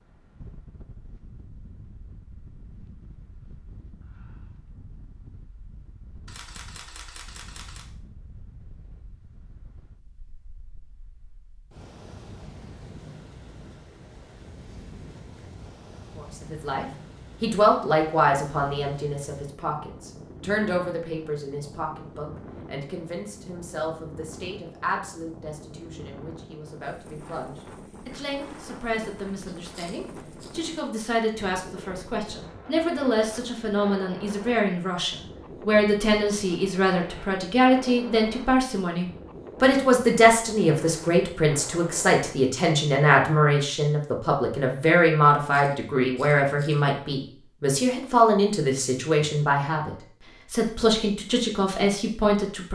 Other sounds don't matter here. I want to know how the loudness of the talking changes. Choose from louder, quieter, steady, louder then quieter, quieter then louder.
quieter then louder.